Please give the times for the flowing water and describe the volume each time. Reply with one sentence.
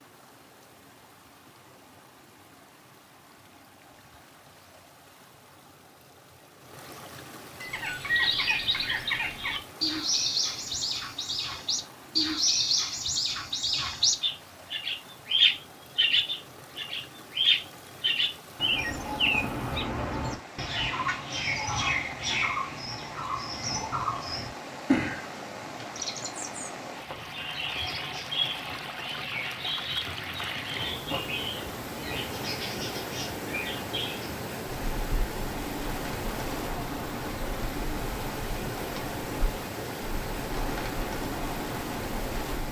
You can hear the flowing water from 0.0 to 42.6 s, getting louder.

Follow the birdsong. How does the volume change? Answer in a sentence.
The loudness of the birdsong goes down.